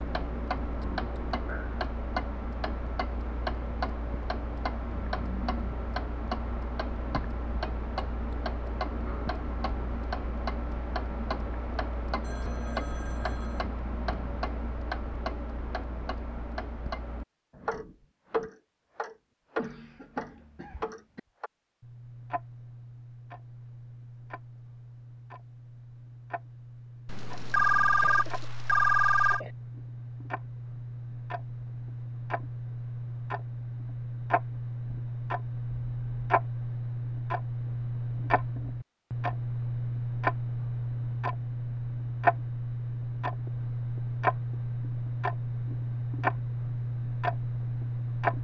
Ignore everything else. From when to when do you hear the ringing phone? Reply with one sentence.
The ringing phone can be heard from 12.2 to 13.7 s and from 27.1 to 29.4 s.